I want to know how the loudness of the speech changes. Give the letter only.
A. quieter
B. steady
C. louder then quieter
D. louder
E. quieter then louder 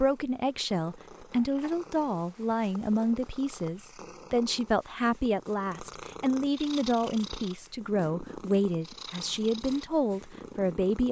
B.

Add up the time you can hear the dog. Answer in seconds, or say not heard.
not heard.